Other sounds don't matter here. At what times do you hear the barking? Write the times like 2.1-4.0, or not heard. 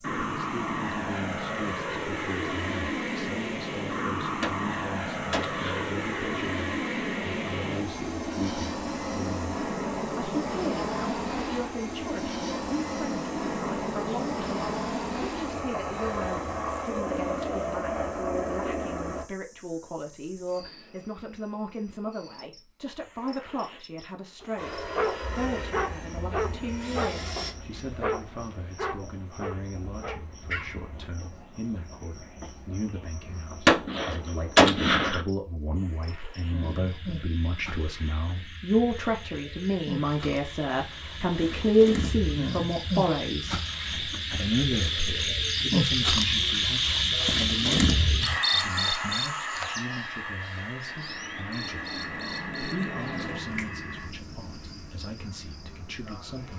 24.4-31.1.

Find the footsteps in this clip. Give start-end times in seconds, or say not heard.
not heard.